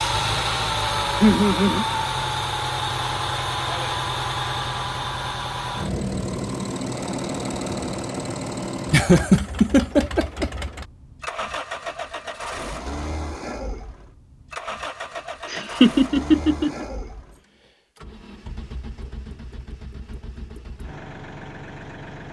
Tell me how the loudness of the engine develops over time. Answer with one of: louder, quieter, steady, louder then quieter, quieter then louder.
quieter.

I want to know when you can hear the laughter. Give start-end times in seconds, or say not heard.
1.2-1.9, 8.9-10.5, 15.5-16.9.